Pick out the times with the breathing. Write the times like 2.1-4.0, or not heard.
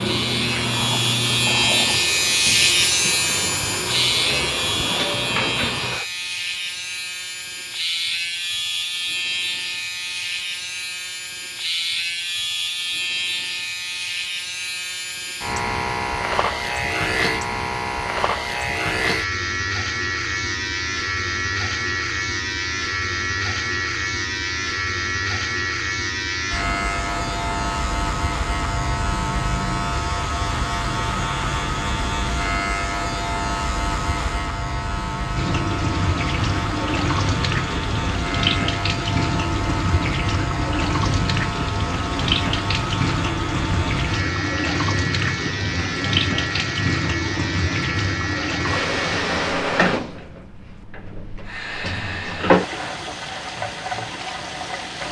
not heard.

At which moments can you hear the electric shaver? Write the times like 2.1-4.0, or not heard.
0.0-49.6.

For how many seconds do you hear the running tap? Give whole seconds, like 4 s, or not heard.
26 s.